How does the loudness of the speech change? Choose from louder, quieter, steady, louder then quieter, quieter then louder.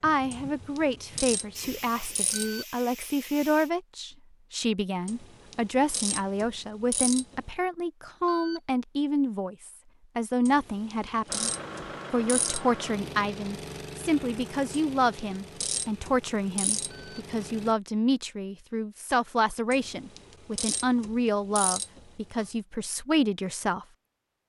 steady.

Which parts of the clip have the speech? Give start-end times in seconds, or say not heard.
0.0-11.5, 12.1-23.9.